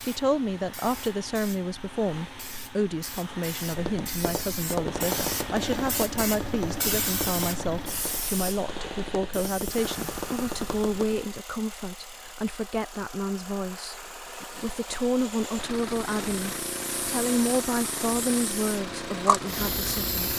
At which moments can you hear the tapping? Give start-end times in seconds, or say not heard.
3.8-11.2.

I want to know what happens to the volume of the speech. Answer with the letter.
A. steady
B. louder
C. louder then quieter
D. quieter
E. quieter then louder
A.